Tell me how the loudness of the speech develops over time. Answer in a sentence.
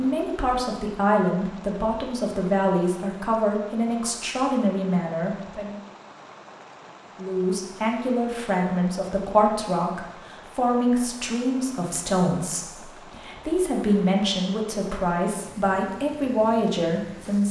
The loudness of the speech stays about the same.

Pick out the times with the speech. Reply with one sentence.
You can hear the speech from 0.0 to 5.8 s and from 7.2 to 17.4 s.